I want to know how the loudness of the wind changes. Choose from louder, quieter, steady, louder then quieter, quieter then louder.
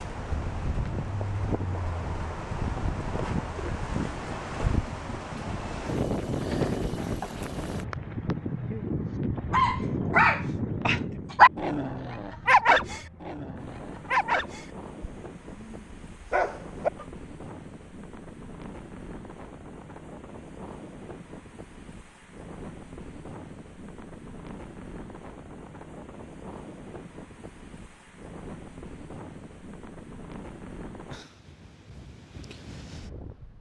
quieter.